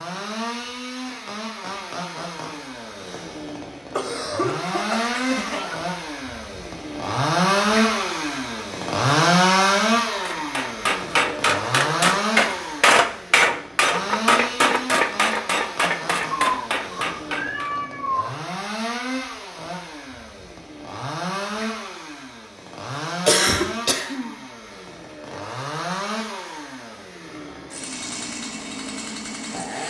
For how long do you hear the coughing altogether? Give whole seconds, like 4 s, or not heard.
3 s.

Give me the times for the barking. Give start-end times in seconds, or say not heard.
not heard.